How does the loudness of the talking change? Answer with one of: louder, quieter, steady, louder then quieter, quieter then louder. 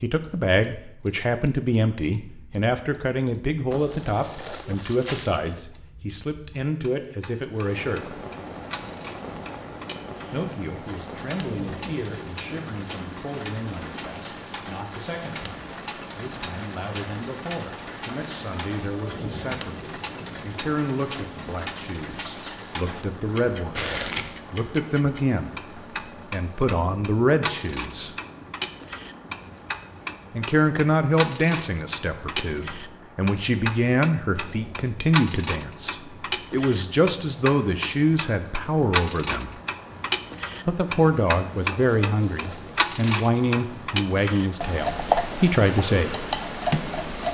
quieter then louder.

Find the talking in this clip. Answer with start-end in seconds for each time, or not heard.
0.0-8.2, 10.3-28.1, 30.3-39.5, 40.6-46.2.